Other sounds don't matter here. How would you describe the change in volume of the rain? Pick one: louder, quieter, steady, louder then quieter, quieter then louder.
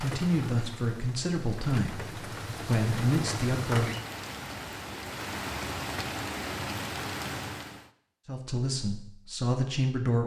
louder.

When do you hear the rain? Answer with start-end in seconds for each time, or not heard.
0.0-7.9.